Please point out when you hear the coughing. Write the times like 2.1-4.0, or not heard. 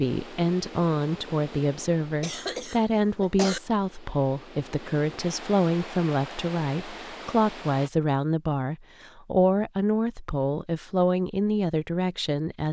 2.2-3.6.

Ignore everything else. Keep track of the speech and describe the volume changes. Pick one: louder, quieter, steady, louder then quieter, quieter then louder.
steady.